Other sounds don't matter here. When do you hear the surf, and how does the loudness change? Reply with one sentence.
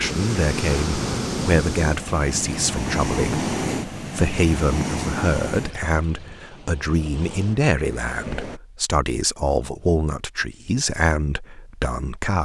The surf can be heard from 0.0 to 8.6 s, getting quieter.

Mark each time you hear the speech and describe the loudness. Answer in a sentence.
The speech can be heard from 0.0 to 12.3 s, at a steady volume.